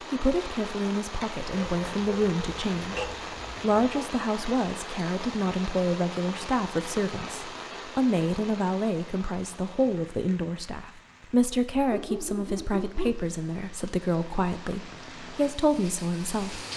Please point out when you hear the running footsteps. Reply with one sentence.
The running footsteps can't be heard in this clip.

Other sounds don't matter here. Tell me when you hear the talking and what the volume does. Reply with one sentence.
You can hear the talking from 0.0 to 16.6 s, at a steady volume.